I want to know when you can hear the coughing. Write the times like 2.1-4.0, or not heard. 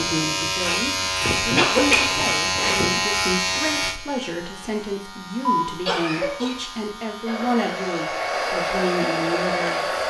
1.2-3.0, 5.5-6.5.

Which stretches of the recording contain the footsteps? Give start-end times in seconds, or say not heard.
not heard.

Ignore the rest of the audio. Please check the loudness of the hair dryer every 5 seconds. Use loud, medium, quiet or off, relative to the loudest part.
off, loud.